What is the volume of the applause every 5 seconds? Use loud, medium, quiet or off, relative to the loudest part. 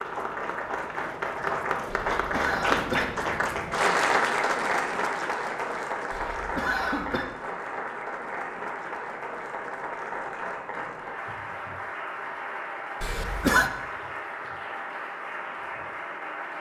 loud, medium, medium, medium.